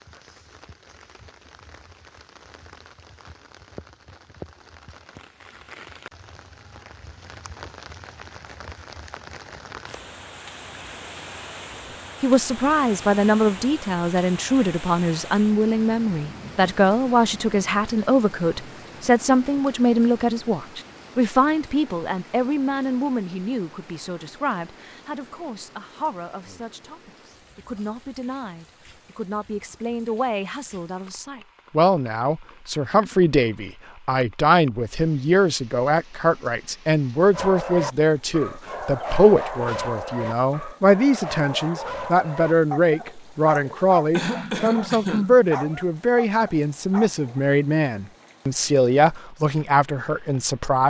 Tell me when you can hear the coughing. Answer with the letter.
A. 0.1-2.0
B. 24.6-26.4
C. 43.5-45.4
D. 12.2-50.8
C.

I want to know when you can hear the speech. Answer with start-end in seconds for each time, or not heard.
12.2-50.8.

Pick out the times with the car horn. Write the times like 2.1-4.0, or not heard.
not heard.